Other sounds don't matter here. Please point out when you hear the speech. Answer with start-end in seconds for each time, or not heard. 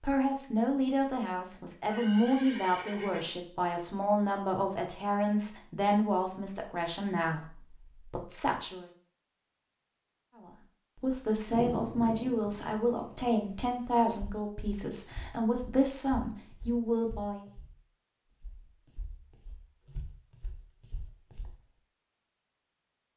0.0-8.9, 10.3-17.4.